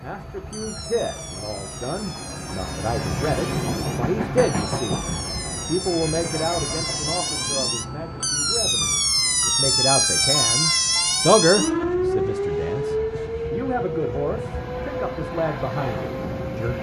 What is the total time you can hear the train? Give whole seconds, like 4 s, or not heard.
17 s.